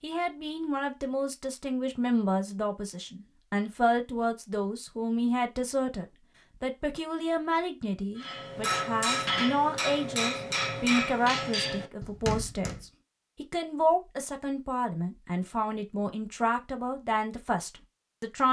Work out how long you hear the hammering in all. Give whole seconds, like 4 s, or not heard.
5 s.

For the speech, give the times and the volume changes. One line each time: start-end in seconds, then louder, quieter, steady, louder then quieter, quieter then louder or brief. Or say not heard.
0.0-18.4 steady.